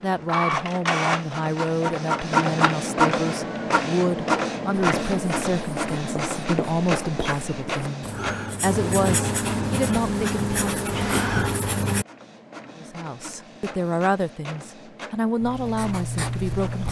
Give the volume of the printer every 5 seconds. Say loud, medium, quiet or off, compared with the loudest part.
loud, medium, quiet, quiet.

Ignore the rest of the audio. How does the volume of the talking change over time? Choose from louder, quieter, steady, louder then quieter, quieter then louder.
steady.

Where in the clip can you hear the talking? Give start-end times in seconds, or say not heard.
0.0-10.6, 12.8-16.8.